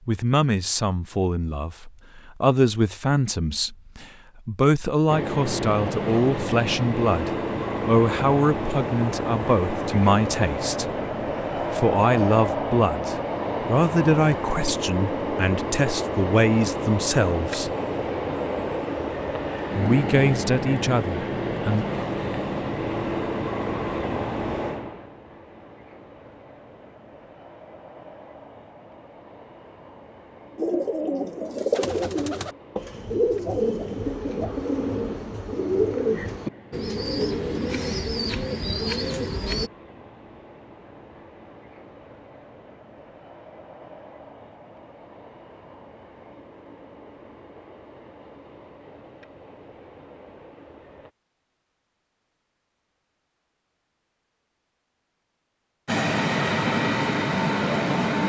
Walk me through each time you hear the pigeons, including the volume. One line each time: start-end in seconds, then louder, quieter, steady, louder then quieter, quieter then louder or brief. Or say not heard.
30.6-39.7 steady.